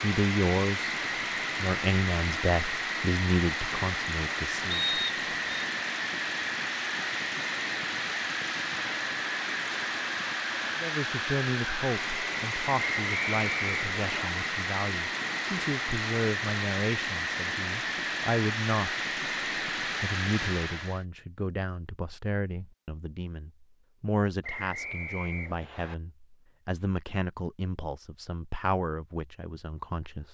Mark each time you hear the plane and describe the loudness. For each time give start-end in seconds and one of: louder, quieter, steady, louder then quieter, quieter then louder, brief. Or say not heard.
0.0-21.1 steady.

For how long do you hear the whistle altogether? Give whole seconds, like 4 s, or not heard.
4 s.